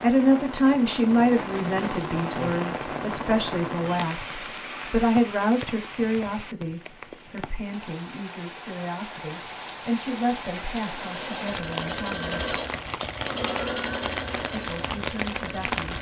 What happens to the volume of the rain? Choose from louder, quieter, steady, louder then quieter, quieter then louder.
quieter then louder.